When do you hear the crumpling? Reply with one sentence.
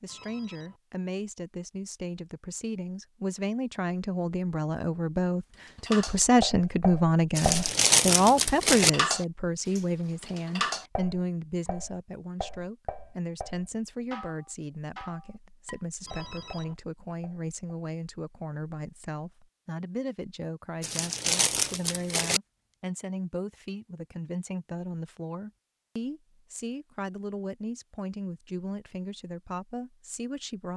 The crumpling can be heard from 7.3 to 8.9 s and from 20.8 to 22.4 s.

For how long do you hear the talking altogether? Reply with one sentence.
The talking can be heard for 31 seconds in total.